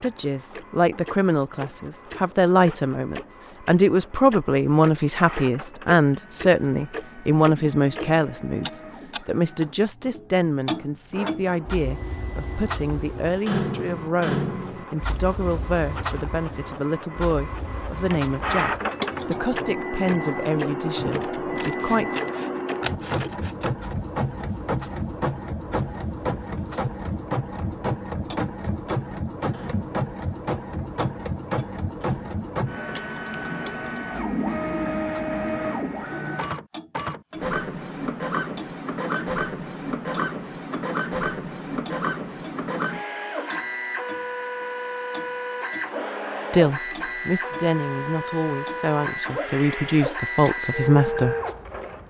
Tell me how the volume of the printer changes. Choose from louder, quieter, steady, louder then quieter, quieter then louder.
louder.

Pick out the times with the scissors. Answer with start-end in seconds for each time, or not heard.
21.2-23.7.